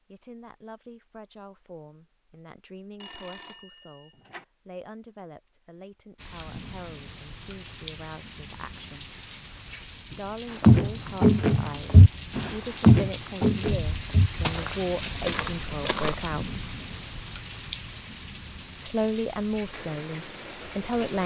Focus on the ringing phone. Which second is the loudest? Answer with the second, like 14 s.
3 s.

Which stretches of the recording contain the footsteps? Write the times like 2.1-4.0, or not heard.
10.6-16.1.